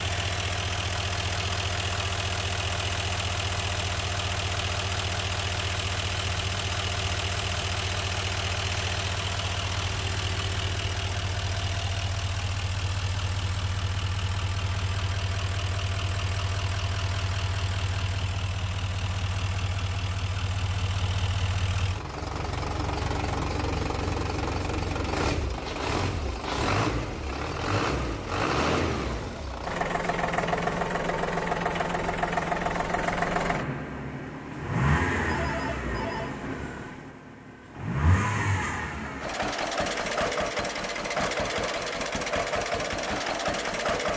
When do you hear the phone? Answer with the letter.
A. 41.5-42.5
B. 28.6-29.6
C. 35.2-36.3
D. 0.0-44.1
C.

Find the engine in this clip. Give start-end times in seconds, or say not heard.
0.0-44.1.